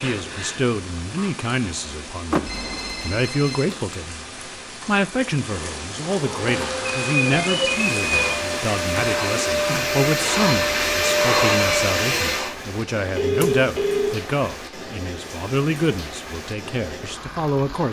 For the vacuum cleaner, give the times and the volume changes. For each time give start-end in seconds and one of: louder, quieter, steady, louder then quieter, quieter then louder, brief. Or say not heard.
6.3-12.6 louder.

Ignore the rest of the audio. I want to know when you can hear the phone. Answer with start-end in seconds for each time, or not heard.
2.5-3.8, 7.0-8.4, 13.2-14.1.